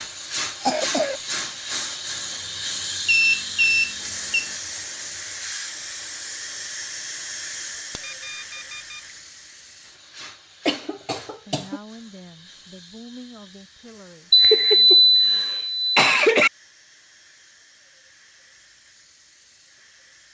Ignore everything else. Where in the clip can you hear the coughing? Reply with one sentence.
The coughing can be heard from 0.6 to 1.2 s, from 10.7 to 11.8 s and from 14.5 to 16.5 s.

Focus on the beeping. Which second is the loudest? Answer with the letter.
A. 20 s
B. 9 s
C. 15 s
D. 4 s
C.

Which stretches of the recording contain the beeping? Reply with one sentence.
The beeping can be heard from 3.0 to 4.5 s, from 8.0 to 9.0 s and from 14.3 to 16.0 s.